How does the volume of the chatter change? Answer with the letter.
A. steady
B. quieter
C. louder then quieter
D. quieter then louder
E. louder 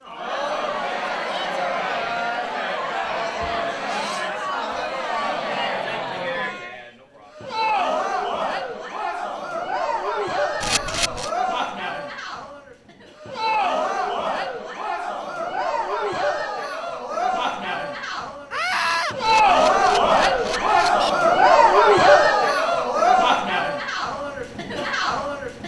E.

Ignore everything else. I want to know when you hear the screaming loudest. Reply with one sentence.
The volume of the screaming peaks at 19 seconds.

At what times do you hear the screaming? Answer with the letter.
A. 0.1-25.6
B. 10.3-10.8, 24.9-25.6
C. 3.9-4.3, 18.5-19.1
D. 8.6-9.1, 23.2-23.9
C.